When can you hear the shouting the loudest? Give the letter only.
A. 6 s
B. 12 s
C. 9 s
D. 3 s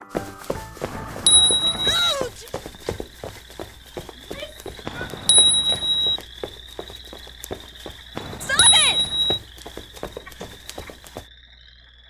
C.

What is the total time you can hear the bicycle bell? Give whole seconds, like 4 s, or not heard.
4 s.